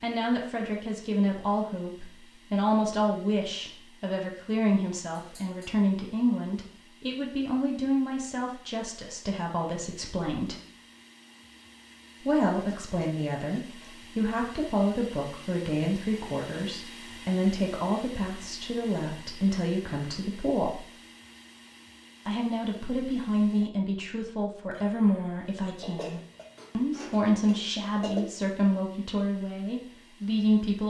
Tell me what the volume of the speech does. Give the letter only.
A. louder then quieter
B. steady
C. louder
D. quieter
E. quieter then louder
B.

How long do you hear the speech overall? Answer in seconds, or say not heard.
28 s.